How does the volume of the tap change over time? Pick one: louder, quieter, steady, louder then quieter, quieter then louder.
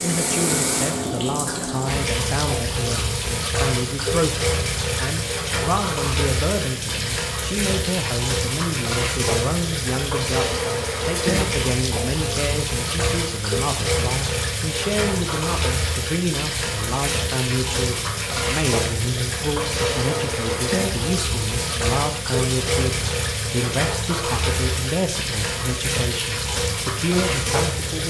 steady.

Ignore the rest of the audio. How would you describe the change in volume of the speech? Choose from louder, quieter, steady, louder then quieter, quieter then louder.
steady.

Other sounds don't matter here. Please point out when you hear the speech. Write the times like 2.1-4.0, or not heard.
0.0-28.0.